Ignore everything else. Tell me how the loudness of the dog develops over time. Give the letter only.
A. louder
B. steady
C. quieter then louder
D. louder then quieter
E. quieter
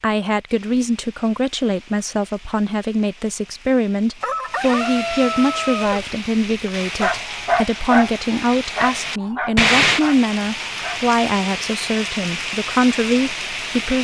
E.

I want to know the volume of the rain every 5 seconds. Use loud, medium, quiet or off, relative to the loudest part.
quiet, loud, loud.